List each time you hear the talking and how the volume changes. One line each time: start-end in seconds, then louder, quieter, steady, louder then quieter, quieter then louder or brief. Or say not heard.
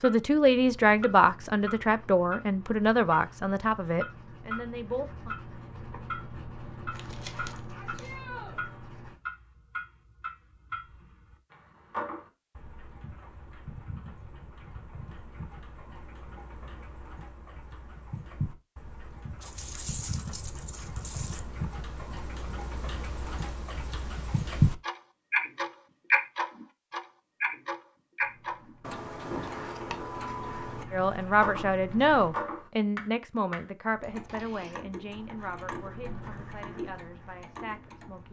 0.0-5.3 quieter
30.9-38.2 quieter.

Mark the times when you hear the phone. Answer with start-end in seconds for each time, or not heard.
not heard.